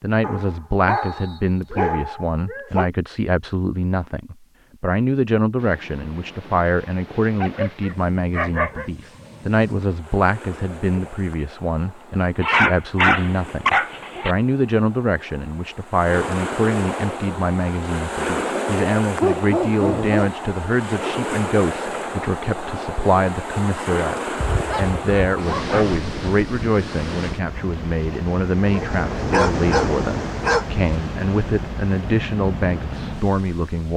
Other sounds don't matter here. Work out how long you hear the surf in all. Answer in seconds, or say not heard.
28 s.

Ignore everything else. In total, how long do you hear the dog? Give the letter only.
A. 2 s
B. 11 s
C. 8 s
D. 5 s
B.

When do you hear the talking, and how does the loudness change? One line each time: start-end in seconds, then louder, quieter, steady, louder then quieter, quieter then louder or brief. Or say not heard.
0.0-33.9 steady.